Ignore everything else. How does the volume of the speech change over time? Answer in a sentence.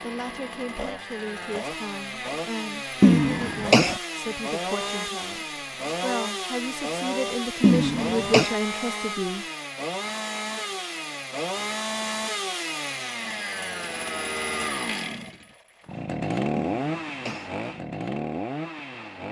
The volume of the speech goes up.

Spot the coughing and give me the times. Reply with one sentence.
You can hear the coughing from 3.0 to 4.0 s, from 7.6 to 8.5 s and from 16.6 to 17.5 s.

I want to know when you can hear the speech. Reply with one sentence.
The speech can be heard from 0.0 to 9.4 s.